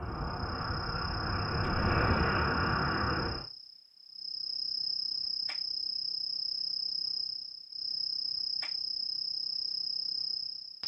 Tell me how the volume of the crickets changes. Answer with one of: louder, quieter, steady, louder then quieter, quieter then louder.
louder.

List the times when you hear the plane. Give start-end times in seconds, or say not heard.
0.0-3.5.